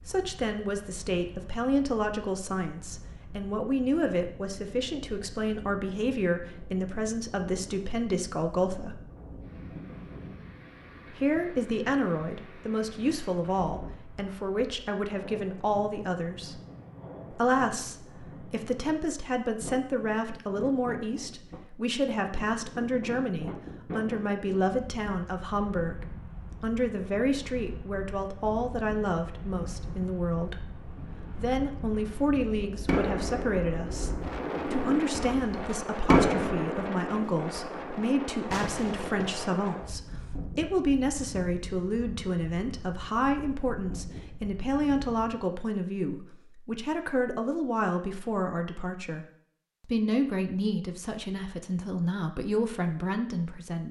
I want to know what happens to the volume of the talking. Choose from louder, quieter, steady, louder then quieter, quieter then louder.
steady.